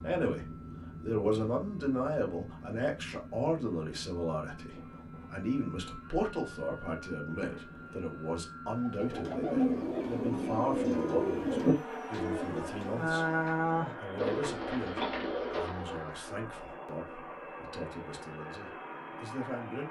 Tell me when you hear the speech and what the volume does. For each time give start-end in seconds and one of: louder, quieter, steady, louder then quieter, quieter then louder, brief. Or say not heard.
0.0-19.8 quieter.